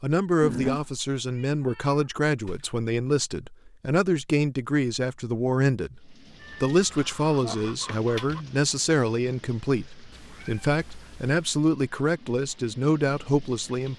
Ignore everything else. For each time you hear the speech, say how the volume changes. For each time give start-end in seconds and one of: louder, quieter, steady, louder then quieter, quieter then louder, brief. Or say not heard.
0.0-13.9 steady.